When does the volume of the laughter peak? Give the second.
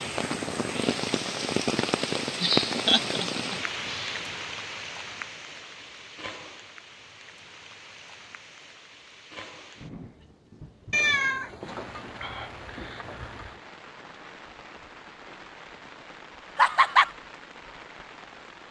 17 s.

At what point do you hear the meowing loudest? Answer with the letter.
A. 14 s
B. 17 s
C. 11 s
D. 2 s
C.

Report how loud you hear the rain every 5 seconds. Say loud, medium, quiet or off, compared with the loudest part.
loud, quiet, quiet, quiet.